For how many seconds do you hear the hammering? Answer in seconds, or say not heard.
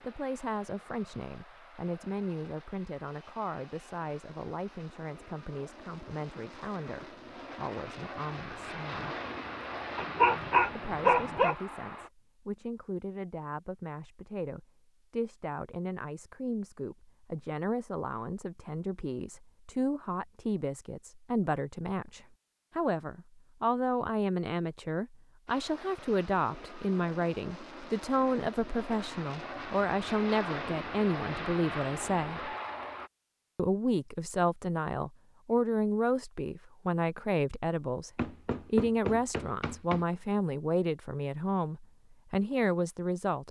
2 s.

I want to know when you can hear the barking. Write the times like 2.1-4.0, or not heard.
9.9-11.6.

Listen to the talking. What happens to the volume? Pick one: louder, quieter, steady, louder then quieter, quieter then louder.
louder.